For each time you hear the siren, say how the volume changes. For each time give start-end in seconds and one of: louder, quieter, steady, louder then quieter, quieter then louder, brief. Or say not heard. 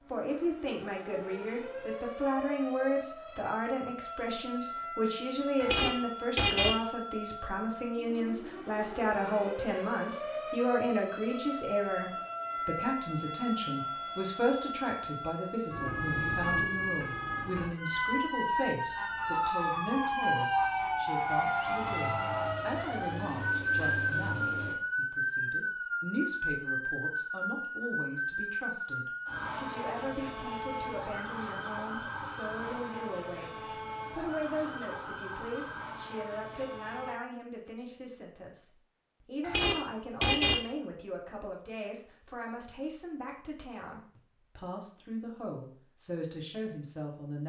0.0-37.1 louder then quieter.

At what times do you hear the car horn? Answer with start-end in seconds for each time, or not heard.
5.6-6.8, 39.4-40.6.